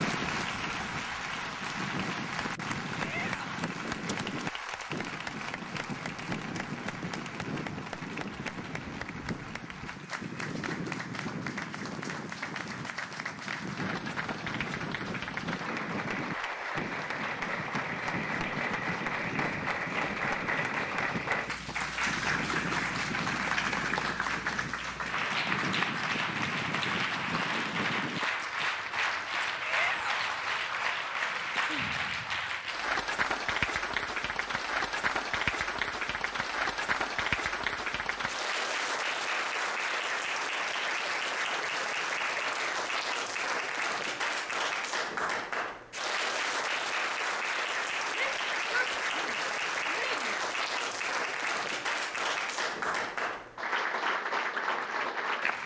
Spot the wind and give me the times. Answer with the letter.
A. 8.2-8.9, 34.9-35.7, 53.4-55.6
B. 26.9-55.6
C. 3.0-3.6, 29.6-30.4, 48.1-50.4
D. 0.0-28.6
D.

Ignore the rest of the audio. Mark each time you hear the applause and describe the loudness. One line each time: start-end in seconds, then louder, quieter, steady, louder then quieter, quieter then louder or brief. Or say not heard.
0.0-55.6 louder.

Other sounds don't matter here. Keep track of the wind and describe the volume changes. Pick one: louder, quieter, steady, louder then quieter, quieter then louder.
steady.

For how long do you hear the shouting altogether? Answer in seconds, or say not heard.
4 s.